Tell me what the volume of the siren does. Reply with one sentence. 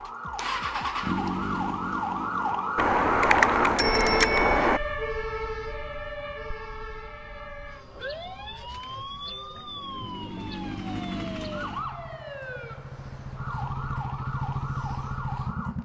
The loudness of the siren goes down.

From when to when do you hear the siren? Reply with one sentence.
The siren can be heard from 0.0 to 15.8 s.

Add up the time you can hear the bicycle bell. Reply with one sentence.
The bicycle bell can be heard for 2 seconds in total.